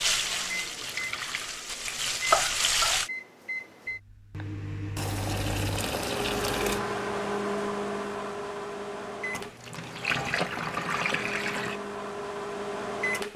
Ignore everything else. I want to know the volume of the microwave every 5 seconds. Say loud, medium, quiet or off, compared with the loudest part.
medium, loud, loud.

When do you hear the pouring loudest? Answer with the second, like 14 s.
10 s.